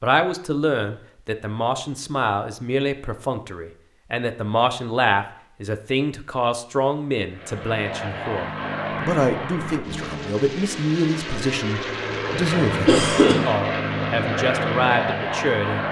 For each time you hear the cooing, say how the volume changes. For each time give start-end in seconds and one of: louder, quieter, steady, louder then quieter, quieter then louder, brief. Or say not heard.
not heard.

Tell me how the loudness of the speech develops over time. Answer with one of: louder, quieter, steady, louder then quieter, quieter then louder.
steady.